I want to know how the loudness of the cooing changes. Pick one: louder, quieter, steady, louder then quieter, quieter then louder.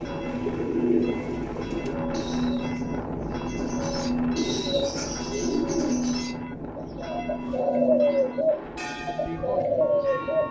quieter then louder.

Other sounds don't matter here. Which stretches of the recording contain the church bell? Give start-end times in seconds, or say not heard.
0.0-10.4.